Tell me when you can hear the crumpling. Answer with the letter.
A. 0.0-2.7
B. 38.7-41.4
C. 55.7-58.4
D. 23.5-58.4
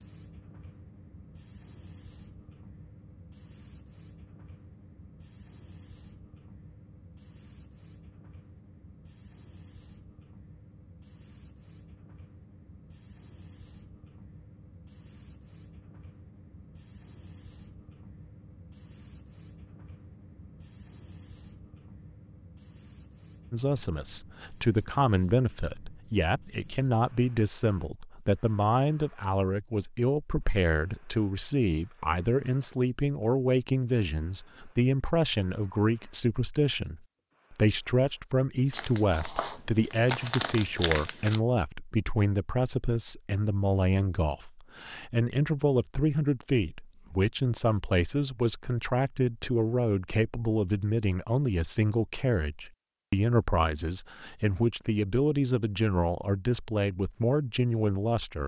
B.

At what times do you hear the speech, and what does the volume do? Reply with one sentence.
You can hear the speech from 23.5 to 58.4 s, at a steady volume.